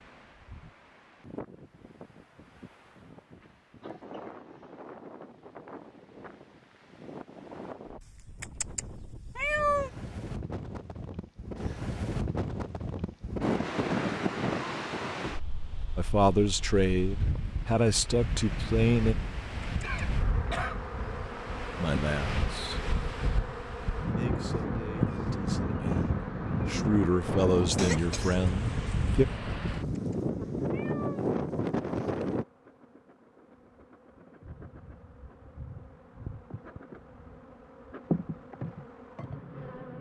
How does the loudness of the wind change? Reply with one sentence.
The loudness of the wind goes up.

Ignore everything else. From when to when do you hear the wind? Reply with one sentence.
The wind can be heard from 0.0 to 32.5 s.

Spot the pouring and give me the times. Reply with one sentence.
You can't hear the pouring here.